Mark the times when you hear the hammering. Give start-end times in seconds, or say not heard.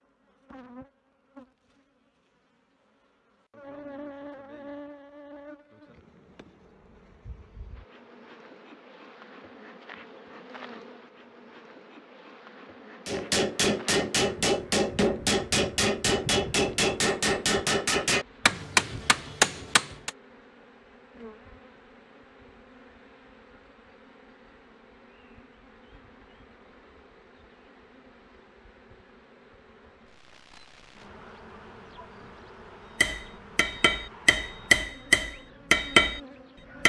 13.1-20.1, 33.0-36.2.